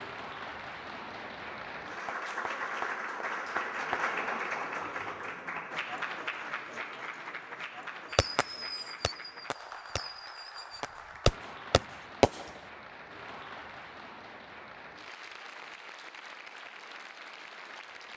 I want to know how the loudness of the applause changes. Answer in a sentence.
The loudness of the applause goes down.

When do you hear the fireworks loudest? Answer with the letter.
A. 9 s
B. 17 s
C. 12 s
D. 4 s
C.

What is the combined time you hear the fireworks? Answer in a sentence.
You can hear the fireworks for 4 seconds altogether.